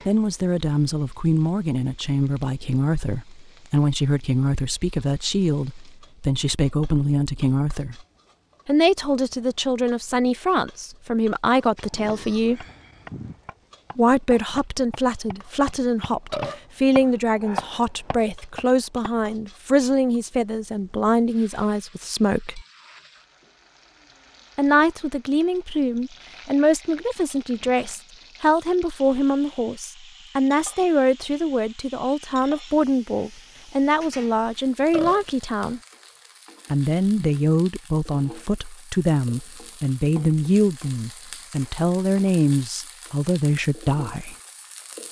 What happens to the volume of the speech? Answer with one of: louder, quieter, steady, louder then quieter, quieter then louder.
steady.